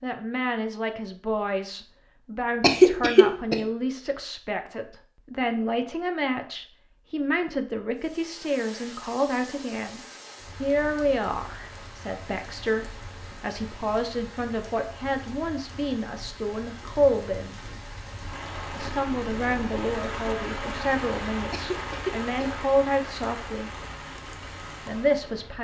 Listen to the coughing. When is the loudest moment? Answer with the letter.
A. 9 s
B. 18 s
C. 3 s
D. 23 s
C.